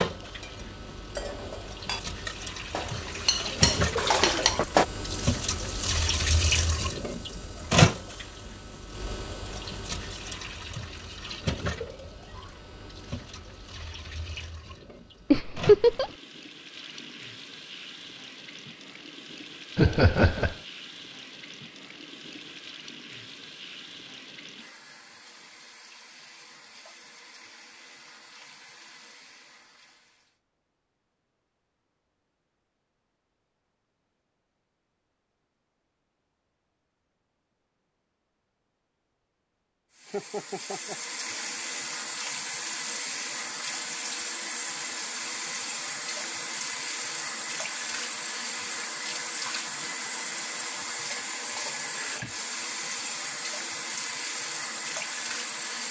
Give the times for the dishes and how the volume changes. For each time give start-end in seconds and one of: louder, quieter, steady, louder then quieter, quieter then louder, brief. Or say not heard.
0.2-4.8 louder.